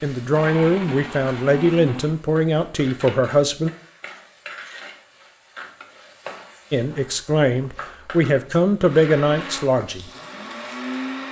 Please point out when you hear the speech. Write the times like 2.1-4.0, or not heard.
0.0-3.7, 6.7-10.1.